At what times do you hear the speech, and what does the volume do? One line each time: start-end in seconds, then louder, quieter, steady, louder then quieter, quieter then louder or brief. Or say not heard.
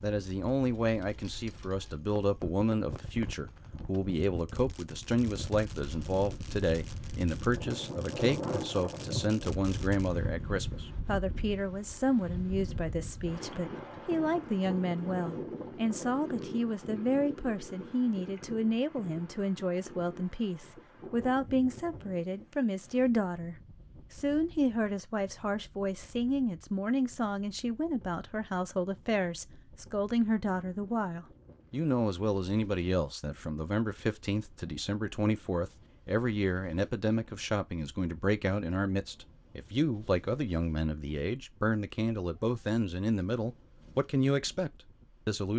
0.0-45.5 steady.